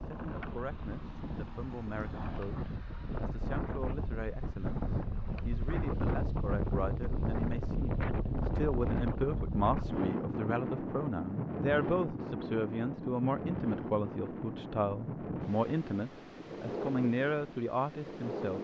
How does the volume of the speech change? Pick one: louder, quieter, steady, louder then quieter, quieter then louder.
louder.